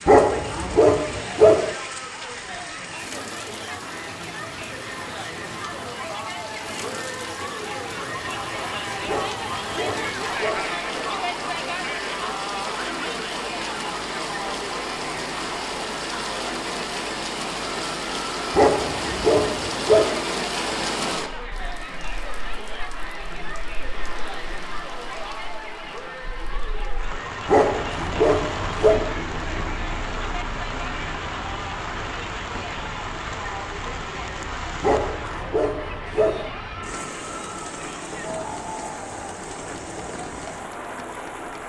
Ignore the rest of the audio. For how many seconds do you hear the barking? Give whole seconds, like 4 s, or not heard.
8 s.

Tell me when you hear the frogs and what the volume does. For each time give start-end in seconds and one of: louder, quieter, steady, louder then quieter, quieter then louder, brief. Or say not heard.
not heard.